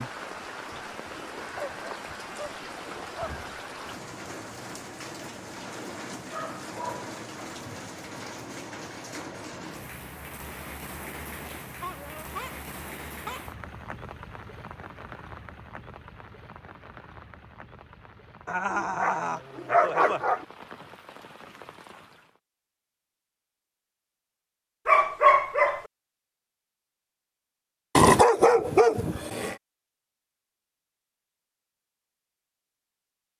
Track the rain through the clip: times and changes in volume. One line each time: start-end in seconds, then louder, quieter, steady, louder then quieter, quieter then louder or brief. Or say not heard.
0.0-22.4 quieter.